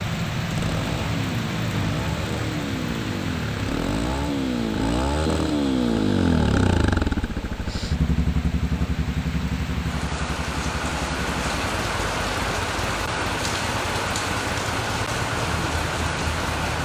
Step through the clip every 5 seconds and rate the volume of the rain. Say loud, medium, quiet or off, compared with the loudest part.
loud, medium, loud, loud.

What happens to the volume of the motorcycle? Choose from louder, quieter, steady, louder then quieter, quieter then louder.
louder then quieter.